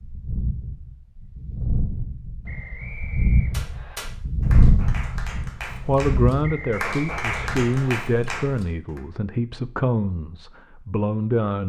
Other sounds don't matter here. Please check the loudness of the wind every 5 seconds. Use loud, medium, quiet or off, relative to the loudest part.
loud, medium, off.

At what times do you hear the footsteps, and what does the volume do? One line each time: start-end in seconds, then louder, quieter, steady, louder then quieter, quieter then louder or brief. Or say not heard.
not heard.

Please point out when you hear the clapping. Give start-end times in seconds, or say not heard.
3.5-9.0.